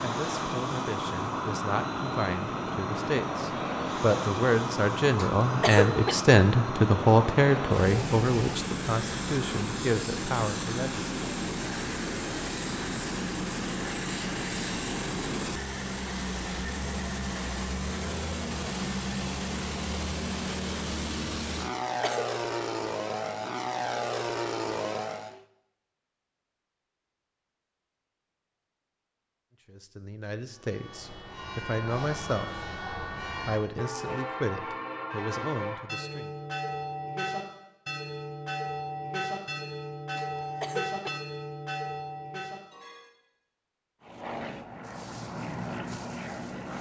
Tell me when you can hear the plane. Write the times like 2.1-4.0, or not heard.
0.0-25.4, 44.0-46.7.